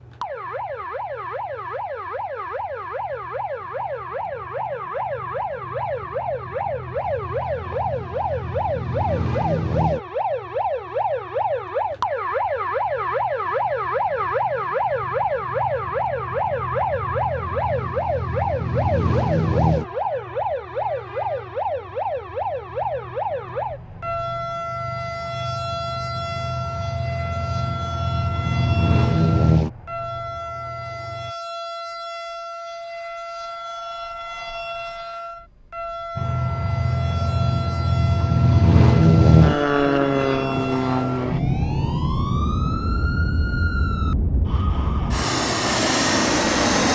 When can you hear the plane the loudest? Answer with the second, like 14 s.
39 s.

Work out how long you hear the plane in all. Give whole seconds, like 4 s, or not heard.
42 s.